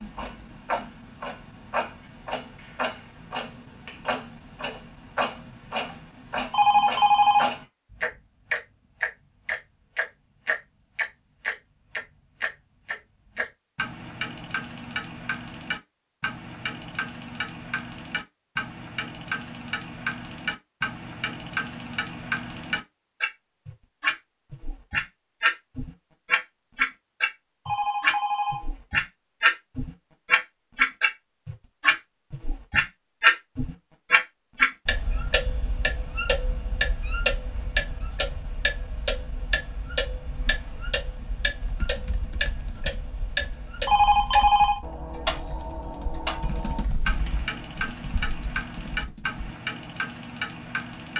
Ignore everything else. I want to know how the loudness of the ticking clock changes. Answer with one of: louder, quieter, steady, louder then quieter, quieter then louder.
louder then quieter.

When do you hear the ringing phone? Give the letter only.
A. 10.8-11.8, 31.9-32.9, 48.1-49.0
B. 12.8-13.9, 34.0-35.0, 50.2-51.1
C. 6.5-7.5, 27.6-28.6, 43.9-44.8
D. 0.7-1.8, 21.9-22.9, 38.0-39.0
C.